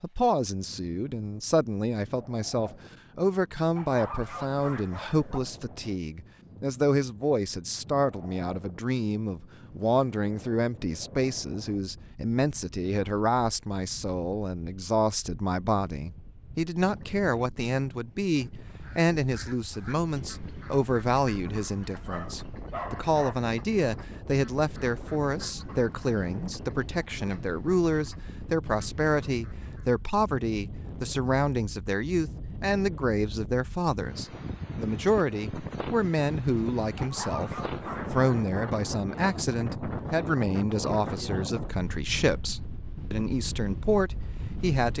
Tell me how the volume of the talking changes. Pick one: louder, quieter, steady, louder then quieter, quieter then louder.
steady.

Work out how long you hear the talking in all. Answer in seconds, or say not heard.
45 s.